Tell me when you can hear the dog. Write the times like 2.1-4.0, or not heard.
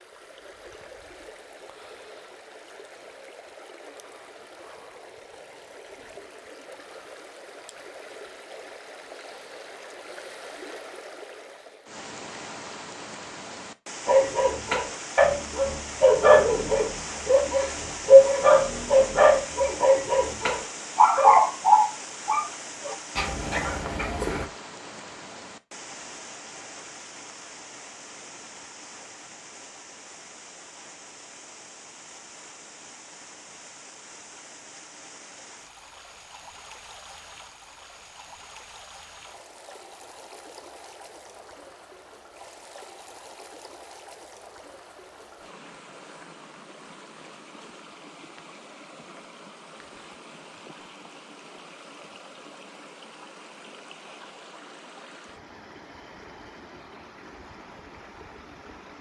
14.1-24.4.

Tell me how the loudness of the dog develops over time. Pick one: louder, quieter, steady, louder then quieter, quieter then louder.
quieter.